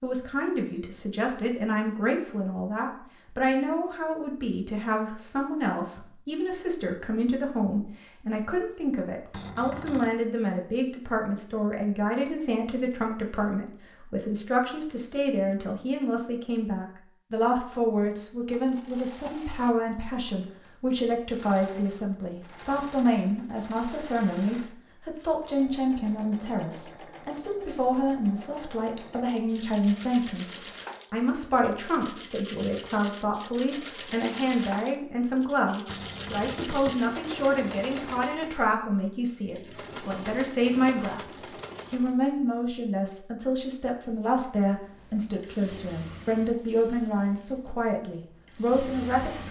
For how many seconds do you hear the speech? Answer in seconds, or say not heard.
49 s.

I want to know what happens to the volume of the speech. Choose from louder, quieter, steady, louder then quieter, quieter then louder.
steady.